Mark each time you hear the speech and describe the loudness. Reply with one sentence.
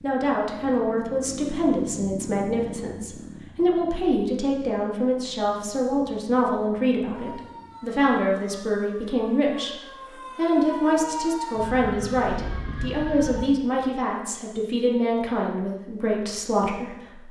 You can hear the speech from 0.0 to 17.2 s, at a steady volume.